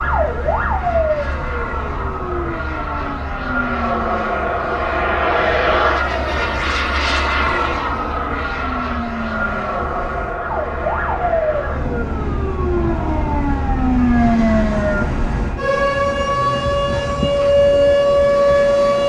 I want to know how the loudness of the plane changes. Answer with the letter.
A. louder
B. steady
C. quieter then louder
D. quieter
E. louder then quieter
E.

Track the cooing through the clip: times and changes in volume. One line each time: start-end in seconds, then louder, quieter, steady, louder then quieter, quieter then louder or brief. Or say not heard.
not heard.